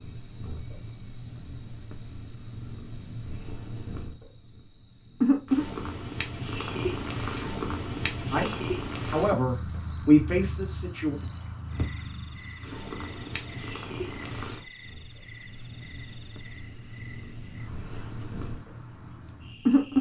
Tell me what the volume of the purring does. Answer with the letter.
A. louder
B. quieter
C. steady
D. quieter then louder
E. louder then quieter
E.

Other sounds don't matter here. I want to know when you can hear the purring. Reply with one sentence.
You can hear the purring from 0.0 to 19.9 s.